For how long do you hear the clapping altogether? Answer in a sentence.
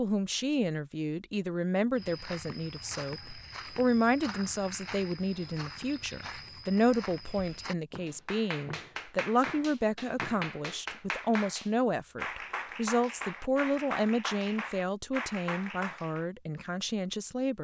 The clapping can be heard for 8 seconds in total.